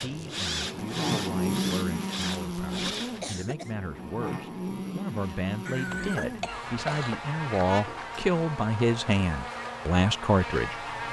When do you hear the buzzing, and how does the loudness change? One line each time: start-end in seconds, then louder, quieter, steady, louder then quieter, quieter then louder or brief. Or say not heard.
0.0-11.0 quieter.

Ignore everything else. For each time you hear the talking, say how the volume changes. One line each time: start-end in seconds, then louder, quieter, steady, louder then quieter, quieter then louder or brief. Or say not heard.
0.0-10.8 louder.